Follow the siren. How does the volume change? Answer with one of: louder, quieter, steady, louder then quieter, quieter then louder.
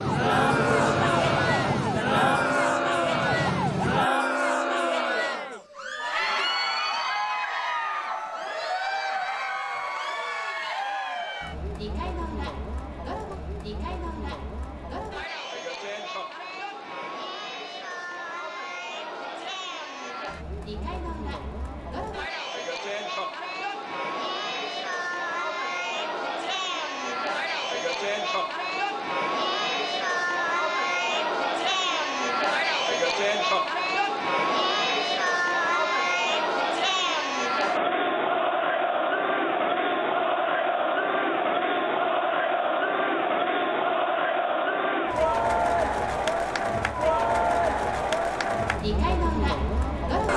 quieter then louder.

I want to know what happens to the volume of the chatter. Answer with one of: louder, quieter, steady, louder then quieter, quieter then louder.
quieter then louder.